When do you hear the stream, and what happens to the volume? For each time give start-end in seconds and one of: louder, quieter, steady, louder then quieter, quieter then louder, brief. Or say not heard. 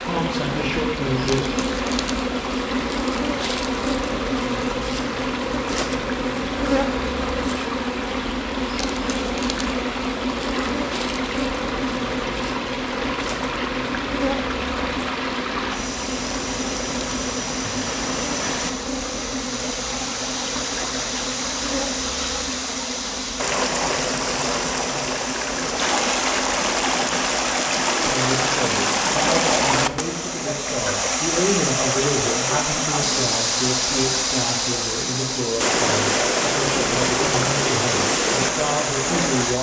0.0-39.5 louder.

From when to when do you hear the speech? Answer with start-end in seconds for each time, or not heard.
0.0-1.6, 28.0-39.5.